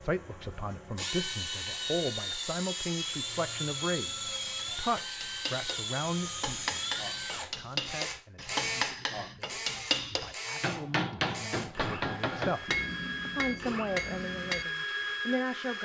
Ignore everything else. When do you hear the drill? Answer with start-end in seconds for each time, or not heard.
0.0-15.8.